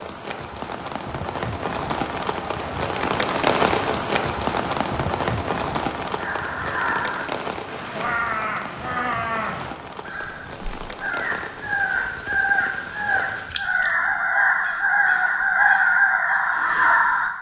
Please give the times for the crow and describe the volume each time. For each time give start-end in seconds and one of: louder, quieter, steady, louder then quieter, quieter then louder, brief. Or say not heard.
6.2-17.3 louder.